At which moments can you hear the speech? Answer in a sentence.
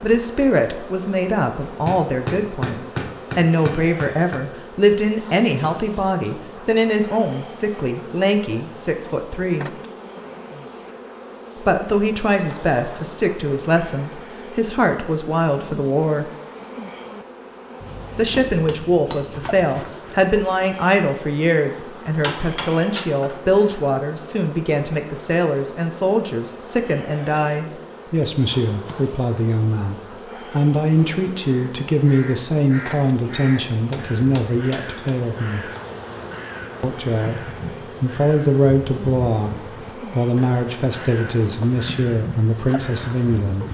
The speech can be heard from 0.0 to 9.7 s, from 11.6 to 16.3 s, from 18.1 to 35.7 s, from 36.8 to 37.4 s and from 38.0 to 43.6 s.